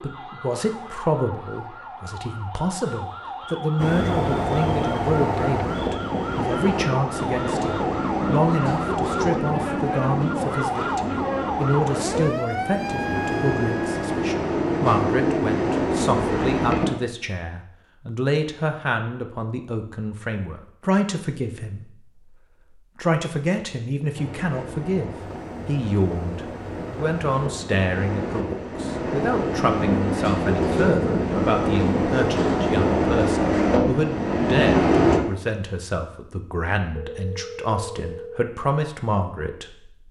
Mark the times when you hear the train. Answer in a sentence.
You can hear the train from 3.8 to 16.9 s and from 24.1 to 35.2 s.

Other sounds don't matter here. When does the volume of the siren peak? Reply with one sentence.
The volume of the siren peaks at 11 seconds.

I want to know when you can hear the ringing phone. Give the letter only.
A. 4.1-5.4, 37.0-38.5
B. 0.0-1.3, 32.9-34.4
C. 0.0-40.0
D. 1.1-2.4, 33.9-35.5
A.